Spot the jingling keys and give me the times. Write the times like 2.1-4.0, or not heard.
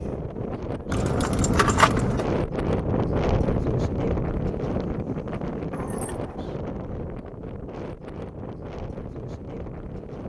0.9-2.2, 5.7-6.5.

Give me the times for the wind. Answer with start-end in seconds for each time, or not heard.
0.0-10.2.